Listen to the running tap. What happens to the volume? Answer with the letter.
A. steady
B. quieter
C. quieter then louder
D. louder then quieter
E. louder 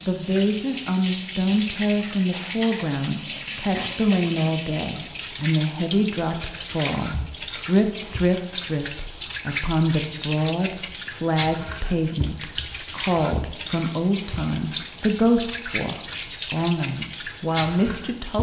A.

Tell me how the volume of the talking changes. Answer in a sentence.
The loudness of the talking stays about the same.